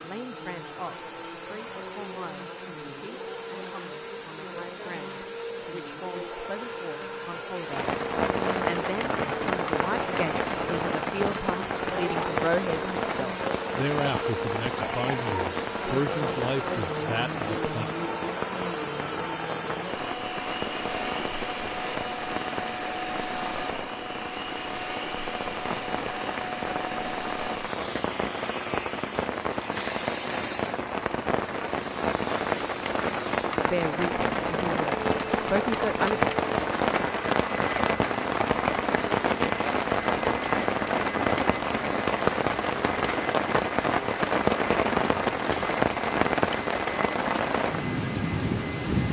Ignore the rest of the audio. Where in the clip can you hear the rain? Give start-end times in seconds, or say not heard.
7.7-49.0.